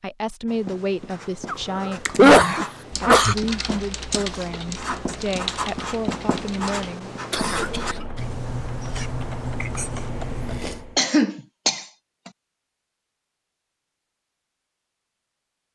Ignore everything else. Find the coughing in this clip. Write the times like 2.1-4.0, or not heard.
1.4-3.4, 7.3-7.8, 10.9-11.8.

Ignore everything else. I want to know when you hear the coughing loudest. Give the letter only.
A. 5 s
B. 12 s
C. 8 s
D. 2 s
D.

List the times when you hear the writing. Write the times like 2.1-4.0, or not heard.
0.5-10.6.